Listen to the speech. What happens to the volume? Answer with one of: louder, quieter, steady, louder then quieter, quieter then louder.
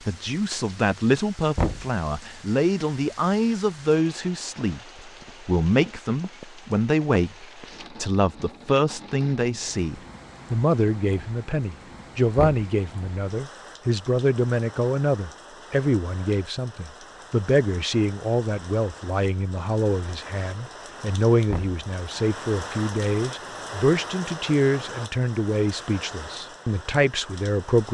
steady.